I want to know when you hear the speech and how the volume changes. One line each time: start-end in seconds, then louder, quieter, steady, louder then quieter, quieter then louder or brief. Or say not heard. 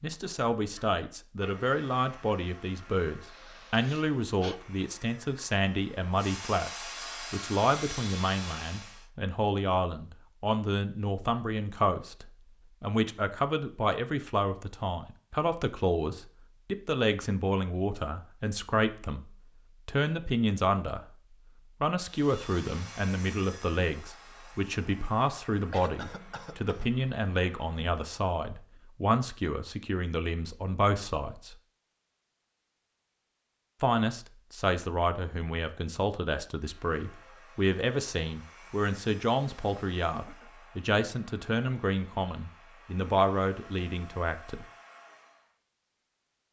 0.0-21.1 steady
21.8-31.6 steady
33.8-44.6 steady.